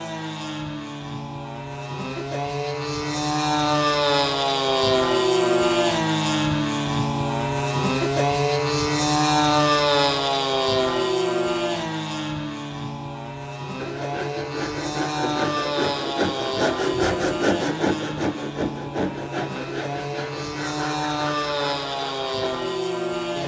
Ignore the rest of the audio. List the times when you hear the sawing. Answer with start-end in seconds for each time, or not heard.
13.8-22.3.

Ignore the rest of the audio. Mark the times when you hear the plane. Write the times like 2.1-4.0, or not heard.
0.0-23.4.